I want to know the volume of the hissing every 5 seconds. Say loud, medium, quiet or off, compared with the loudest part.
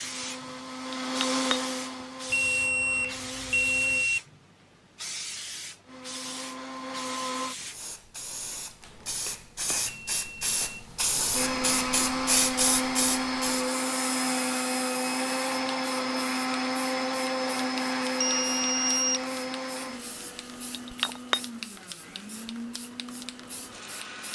medium, medium, loud, quiet, quiet.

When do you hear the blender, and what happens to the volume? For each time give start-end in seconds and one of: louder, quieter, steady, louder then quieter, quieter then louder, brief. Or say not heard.
0.0-4.1 louder then quieter
5.8-7.5 brief
11.3-24.2 quieter.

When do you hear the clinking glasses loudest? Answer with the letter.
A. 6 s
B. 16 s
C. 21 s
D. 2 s
C.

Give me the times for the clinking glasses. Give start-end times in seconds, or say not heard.
0.9-2.0, 20.7-21.4.